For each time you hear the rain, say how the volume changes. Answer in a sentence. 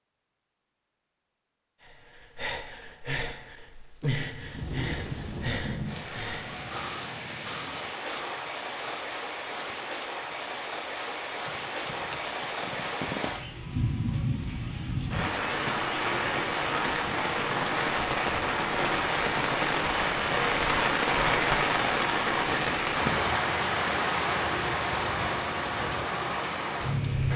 You can hear the rain from 4.2 to 27.3 s, getting louder.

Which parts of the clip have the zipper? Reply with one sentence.
You can hear the zipper from 11.4 to 13.4 s.